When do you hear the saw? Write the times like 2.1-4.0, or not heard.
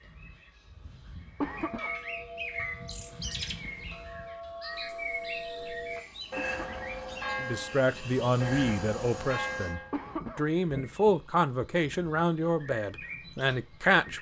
not heard.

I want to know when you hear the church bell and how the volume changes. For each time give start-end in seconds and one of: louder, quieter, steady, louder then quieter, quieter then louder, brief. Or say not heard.
1.6-10.0 louder.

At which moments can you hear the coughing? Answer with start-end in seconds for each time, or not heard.
1.4-1.9, 6.3-6.8, 9.9-10.4.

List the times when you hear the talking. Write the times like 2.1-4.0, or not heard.
7.3-14.1.